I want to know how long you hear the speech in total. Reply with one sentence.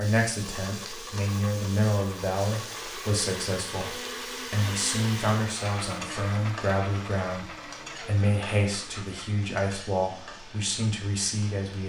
The speech can be heard for 12 seconds in total.